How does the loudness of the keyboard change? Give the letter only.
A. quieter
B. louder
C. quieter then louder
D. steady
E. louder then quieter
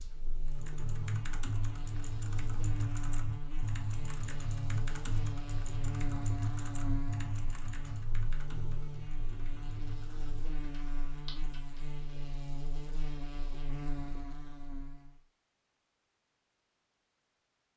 A.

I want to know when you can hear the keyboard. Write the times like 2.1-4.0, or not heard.
0.5-11.9.